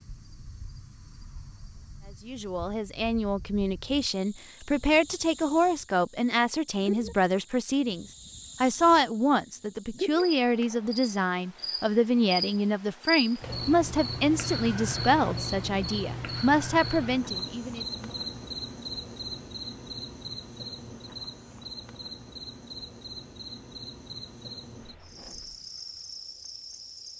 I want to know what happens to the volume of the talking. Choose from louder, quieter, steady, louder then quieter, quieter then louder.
steady.